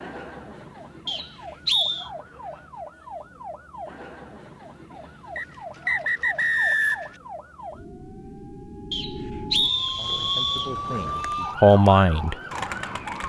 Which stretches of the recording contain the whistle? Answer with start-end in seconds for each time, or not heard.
1.1-2.1, 5.3-7.1, 8.9-10.7.